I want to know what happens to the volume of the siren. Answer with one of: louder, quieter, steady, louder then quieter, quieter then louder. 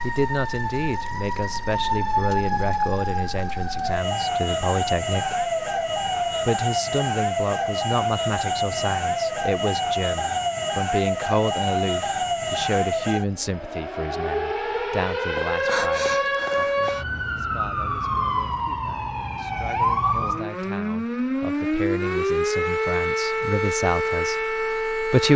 steady.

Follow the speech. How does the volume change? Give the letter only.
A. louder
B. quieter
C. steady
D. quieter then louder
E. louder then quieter
D.